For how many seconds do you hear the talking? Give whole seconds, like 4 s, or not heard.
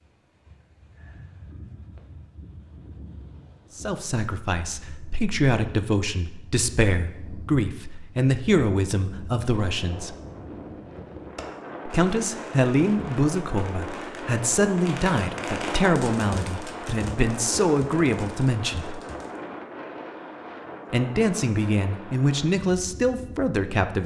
17 s.